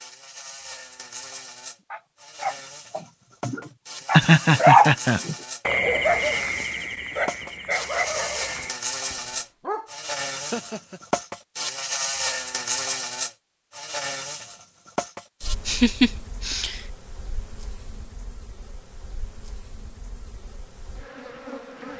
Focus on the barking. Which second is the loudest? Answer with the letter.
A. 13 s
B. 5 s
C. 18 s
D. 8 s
B.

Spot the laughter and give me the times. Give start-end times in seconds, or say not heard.
4.1-5.2, 10.3-11.0, 15.7-16.8.